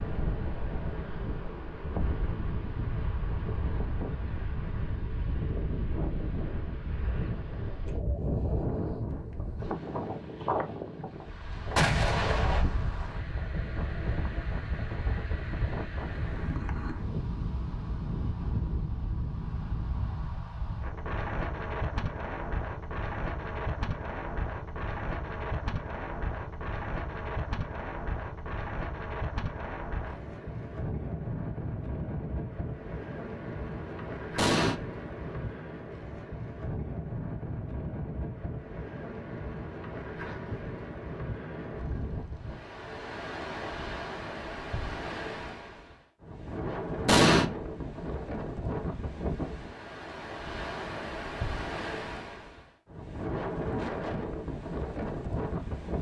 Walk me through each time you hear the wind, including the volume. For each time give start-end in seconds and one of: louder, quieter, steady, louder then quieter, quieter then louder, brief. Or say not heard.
0.0-55.9 steady.